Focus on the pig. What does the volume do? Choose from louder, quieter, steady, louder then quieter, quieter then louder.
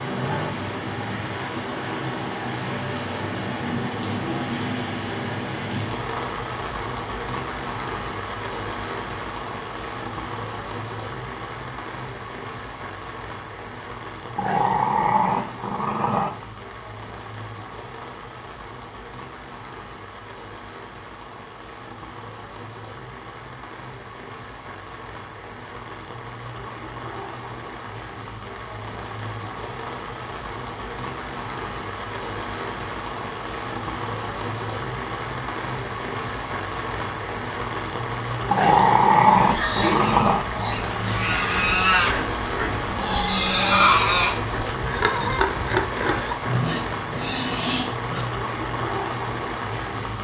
louder then quieter.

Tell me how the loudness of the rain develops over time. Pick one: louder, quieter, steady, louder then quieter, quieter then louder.
quieter then louder.